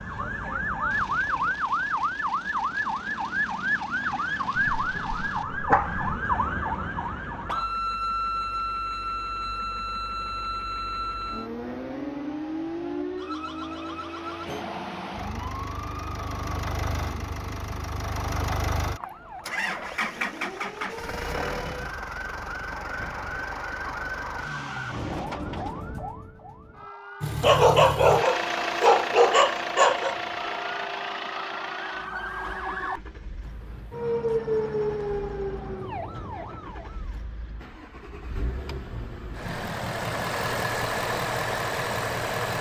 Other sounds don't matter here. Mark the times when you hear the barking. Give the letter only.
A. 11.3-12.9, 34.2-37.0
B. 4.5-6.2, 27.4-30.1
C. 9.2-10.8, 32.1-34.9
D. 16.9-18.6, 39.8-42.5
B.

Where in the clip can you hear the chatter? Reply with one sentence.
You can't hear the chatter here.